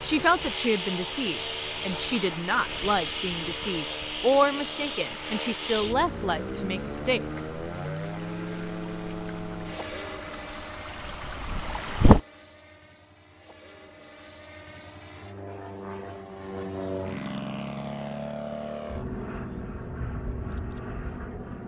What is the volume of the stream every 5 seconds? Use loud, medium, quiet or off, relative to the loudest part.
quiet, quiet, loud, off, off.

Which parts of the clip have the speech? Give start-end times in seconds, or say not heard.
0.0-7.5.